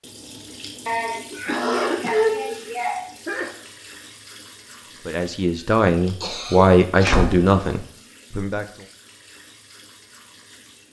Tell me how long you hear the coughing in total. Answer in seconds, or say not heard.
4 s.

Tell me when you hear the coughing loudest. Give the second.
2 s.